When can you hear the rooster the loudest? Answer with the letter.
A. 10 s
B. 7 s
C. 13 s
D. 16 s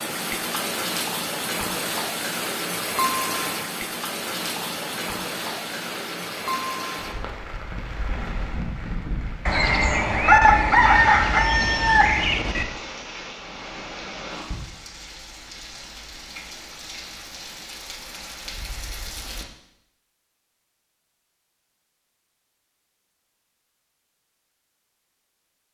A.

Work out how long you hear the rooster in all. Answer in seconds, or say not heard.
3 s.